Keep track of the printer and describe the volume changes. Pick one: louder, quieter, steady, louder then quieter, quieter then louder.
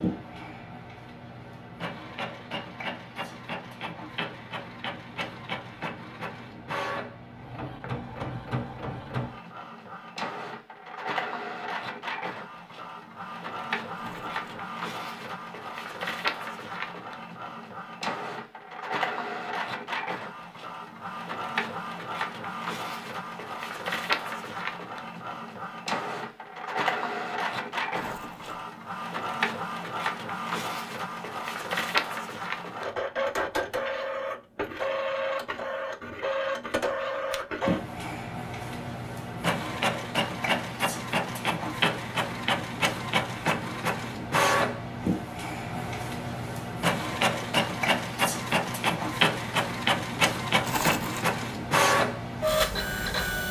louder.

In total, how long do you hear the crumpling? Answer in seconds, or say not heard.
2 s.